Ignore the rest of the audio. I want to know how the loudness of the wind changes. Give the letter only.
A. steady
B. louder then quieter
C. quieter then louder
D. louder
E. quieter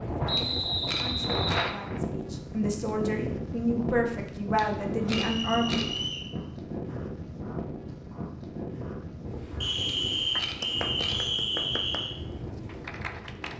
E.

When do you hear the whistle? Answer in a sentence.
The whistle can be heard from 0.2 to 1.7 s, from 5.2 to 6.3 s and from 9.6 to 12.2 s.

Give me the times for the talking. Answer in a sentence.
The talking can be heard from 0.0 to 5.8 s.